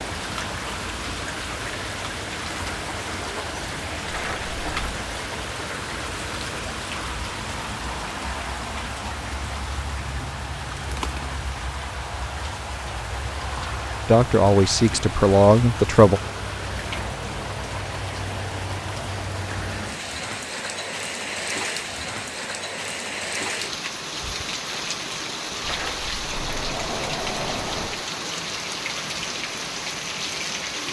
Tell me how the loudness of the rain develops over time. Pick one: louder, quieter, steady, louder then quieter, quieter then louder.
steady.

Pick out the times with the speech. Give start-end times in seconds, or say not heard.
14.1-16.2.